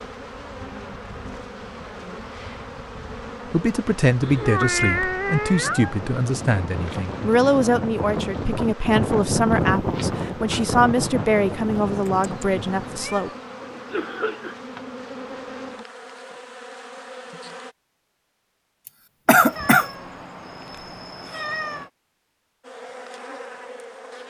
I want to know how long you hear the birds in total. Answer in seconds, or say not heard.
not heard.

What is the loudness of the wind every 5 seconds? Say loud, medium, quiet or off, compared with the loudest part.
quiet, loud, loud, off, off.